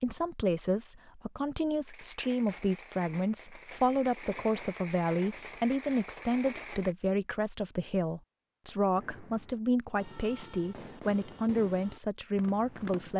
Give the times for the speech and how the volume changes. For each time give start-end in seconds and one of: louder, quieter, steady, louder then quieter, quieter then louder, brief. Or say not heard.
0.0-13.1 steady.